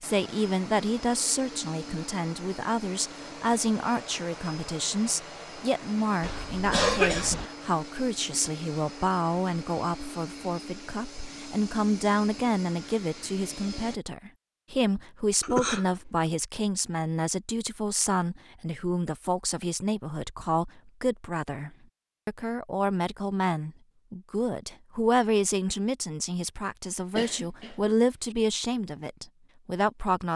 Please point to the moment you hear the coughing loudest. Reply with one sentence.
The volume of the coughing peaks at 7 seconds.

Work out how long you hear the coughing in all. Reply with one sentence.
The coughing can be heard for 3 seconds in total.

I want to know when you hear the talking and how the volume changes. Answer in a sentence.
You can hear the talking from 0.0 to 30.3 s, at a steady volume.